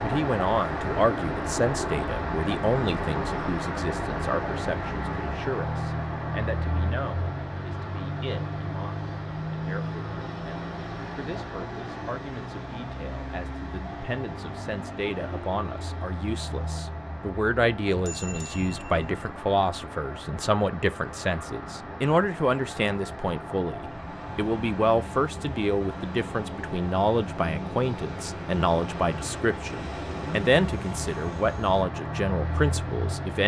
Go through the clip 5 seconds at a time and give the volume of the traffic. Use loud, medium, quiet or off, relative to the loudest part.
loud, loud, medium, medium, medium, medium, loud.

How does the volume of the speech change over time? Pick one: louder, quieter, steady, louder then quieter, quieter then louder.
quieter then louder.